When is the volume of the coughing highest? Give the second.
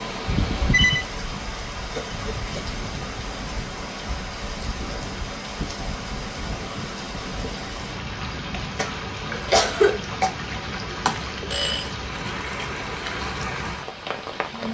10 s.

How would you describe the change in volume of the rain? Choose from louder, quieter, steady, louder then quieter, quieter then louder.
steady.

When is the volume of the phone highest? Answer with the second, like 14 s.
1 s.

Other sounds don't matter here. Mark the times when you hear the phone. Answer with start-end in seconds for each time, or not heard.
0.2-1.1, 11.1-11.8.